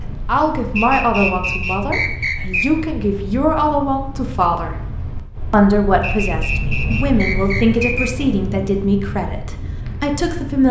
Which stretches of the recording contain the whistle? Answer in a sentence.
The whistle can be heard from 0.8 to 2.6 s and from 6.0 to 8.1 s.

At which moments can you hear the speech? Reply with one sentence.
You can hear the speech from 0.0 to 4.8 s and from 5.5 to 10.6 s.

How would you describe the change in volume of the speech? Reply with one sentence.
The volume of the speech stays about the same.